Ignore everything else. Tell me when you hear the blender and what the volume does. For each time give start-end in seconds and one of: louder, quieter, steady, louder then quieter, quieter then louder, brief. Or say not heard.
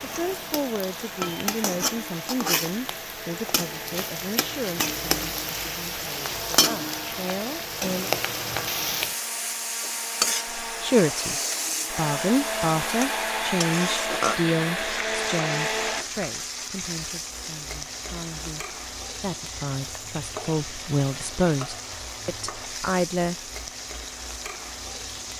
0.0-16.1 louder.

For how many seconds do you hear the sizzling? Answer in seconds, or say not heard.
25 s.